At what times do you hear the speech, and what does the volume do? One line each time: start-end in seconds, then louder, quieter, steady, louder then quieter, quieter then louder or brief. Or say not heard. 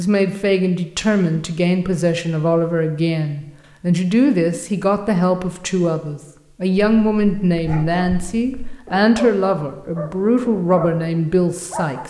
0.0-12.0 steady.